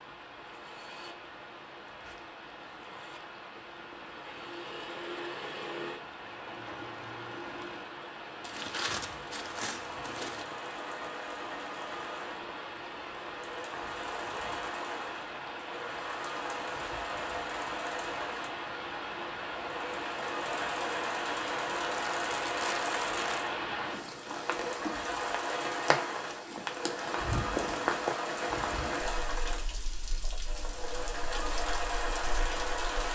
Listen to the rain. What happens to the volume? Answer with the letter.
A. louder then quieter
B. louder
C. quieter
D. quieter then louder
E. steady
B.